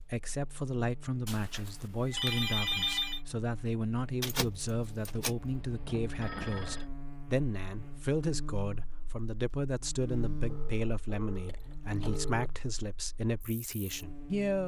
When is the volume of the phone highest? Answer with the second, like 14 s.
3 s.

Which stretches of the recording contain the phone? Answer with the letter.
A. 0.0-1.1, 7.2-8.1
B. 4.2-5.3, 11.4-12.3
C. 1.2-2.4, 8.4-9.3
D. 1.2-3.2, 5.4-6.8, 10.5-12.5
D.